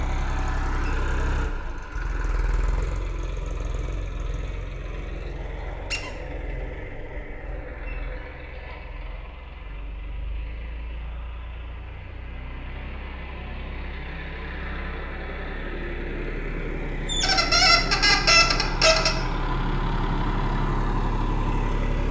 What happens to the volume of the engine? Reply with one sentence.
The loudness of the engine goes down, then up.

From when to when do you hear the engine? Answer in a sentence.
You can hear the engine from 0.0 to 22.0 s.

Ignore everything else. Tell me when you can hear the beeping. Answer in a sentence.
You can't hear the beeping here.